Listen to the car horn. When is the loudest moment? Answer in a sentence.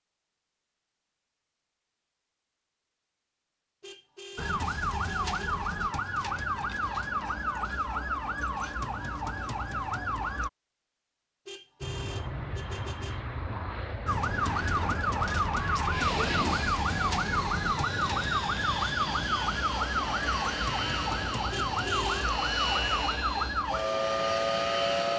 The volume of the car horn peaks at 22 seconds.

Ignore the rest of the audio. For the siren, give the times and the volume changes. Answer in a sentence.
You can hear the siren from 4.3 to 10.5 s, at a steady volume; and from 14.1 to 25.1 s, at a steady volume.